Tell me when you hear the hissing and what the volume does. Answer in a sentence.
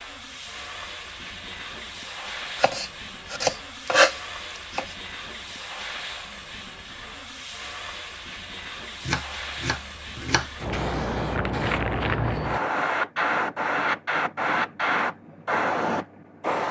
You can hear the hissing from 0.0 to 16.6 s, getting louder.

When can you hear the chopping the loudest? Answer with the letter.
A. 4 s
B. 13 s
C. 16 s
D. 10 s
A.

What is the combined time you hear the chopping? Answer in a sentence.
The chopping can be heard for 4 seconds in total.